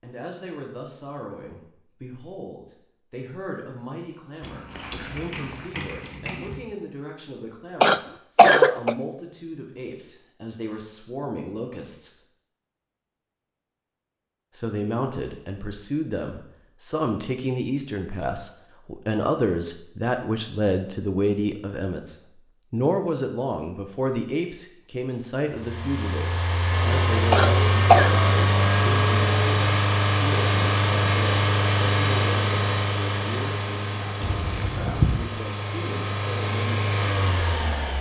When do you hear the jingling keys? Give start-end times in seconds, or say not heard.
4.4-6.6, 34.2-35.2.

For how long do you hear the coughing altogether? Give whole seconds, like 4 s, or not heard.
2 s.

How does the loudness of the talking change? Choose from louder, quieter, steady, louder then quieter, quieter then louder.
louder then quieter.